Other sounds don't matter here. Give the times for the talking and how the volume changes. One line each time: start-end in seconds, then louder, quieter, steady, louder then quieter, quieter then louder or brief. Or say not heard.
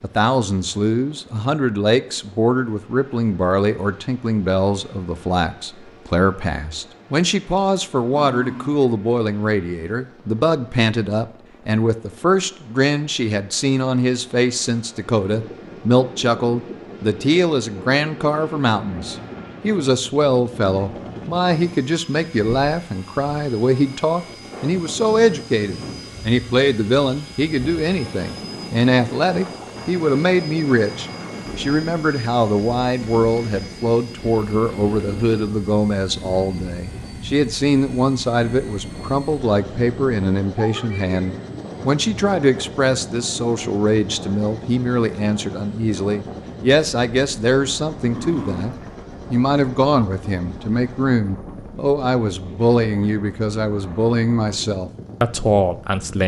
0.0-56.2 steady.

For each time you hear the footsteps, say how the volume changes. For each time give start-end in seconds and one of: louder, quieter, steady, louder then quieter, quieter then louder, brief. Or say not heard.
not heard.